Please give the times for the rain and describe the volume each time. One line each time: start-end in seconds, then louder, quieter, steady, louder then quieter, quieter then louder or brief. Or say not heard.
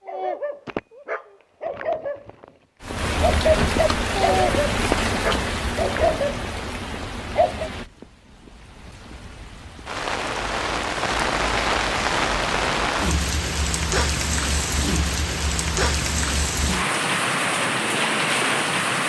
2.8-19.0 quieter then louder.